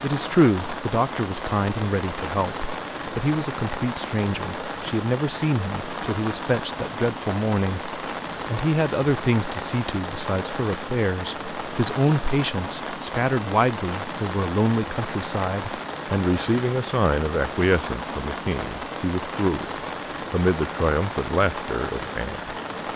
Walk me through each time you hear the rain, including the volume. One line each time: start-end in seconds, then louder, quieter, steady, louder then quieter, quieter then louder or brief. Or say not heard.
0.0-22.9 steady.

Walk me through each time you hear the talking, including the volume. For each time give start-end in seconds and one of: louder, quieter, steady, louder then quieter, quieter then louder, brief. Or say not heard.
0.0-19.7 steady
20.3-22.5 brief.